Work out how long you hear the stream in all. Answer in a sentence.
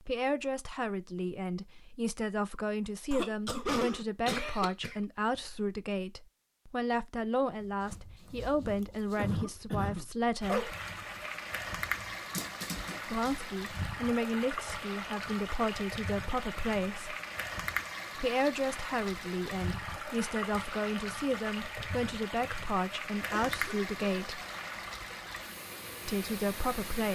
The stream can be heard for 17 seconds in total.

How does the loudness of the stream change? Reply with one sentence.
The volume of the stream stays about the same.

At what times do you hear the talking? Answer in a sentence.
You can hear the talking from 0.1 to 10.8 s, from 13.1 to 17.1 s, from 18.1 to 24.4 s and from 26.1 to 27.1 s.